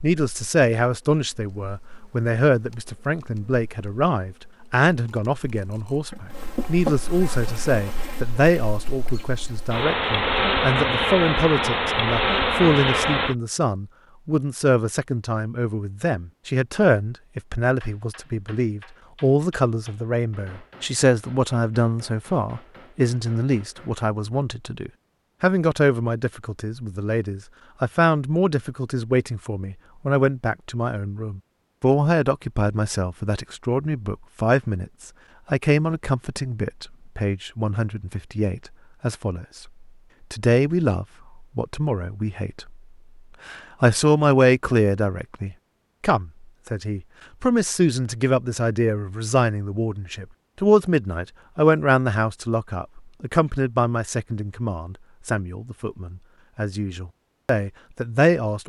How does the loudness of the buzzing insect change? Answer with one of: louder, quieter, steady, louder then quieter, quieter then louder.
louder.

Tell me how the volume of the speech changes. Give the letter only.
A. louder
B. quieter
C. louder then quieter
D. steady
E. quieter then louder
D.